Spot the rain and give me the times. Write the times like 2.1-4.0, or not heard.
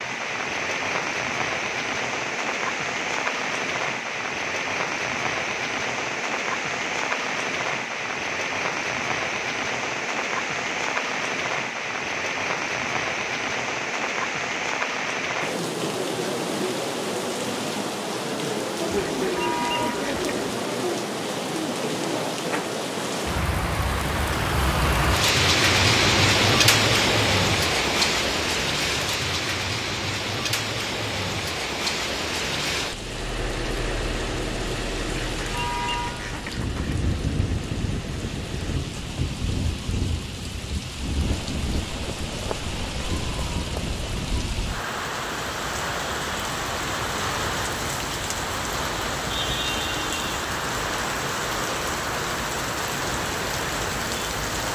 0.0-54.6.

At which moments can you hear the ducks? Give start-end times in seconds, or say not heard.
18.9-20.4, 35.3-37.0.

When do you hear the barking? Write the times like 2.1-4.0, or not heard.
not heard.